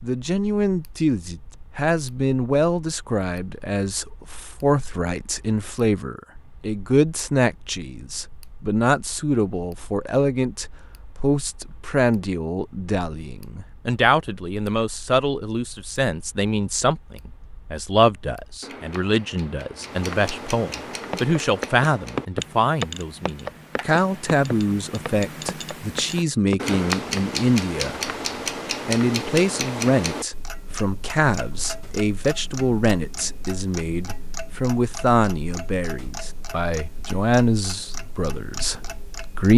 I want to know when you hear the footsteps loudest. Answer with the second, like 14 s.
22 s.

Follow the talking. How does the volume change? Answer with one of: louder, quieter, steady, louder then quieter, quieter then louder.
steady.